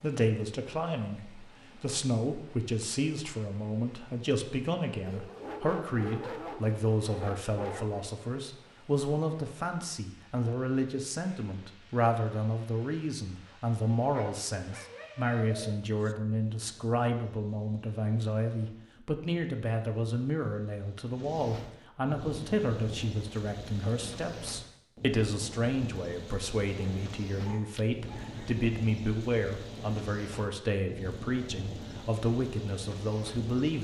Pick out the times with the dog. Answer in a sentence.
The dog can be heard from 5.0 to 8.1 s, from 14.1 to 16.1 s and from 26.8 to 28.6 s.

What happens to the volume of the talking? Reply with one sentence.
The volume of the talking stays about the same.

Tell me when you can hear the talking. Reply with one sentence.
The talking can be heard from 0.0 to 33.7 s.